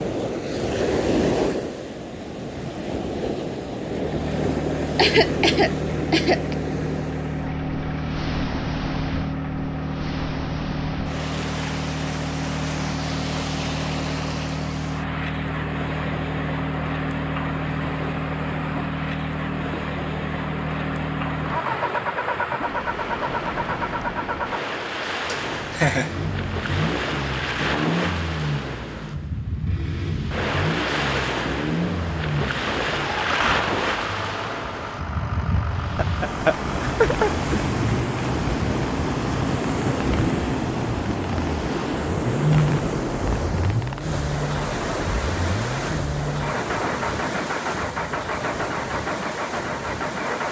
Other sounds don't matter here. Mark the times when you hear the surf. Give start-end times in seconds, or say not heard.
0.0-50.4.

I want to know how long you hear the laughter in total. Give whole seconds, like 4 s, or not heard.
4 s.